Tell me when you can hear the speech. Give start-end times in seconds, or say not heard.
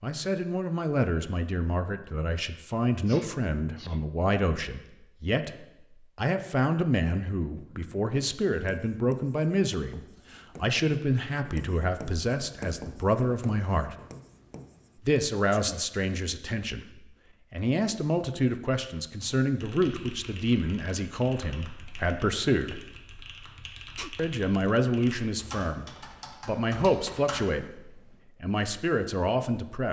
0.0-13.9, 15.0-22.8, 24.1-29.8.